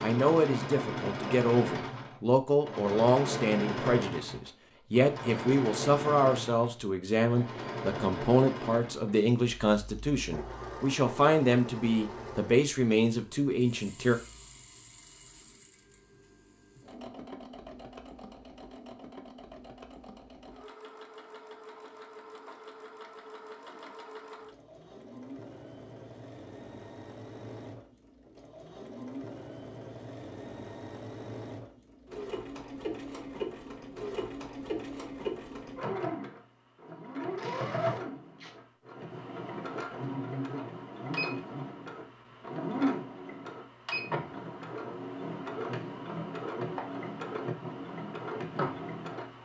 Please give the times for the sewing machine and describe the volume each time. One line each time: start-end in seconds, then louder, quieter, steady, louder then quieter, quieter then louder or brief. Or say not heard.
0.0-49.4 quieter then louder.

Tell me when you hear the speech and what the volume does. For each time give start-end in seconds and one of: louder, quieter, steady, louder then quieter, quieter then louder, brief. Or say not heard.
0.0-14.2 steady.